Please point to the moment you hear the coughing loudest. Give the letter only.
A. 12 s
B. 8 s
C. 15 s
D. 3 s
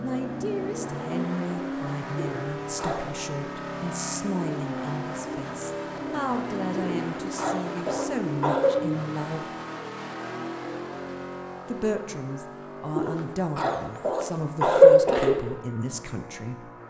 C.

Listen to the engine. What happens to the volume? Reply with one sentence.
The volume of the engine goes down.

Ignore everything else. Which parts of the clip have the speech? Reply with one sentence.
You can hear the speech from 0.0 to 9.6 s and from 11.7 to 16.7 s.